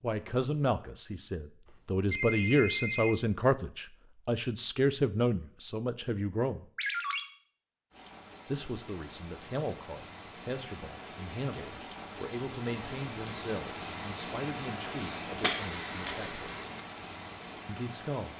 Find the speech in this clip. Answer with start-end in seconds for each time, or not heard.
0.0-6.7, 8.4-16.4, 17.6-18.3.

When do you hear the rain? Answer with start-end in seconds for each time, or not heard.
7.9-18.3.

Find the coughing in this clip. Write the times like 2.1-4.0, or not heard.
15.0-16.2.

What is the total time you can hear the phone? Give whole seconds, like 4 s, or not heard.
3 s.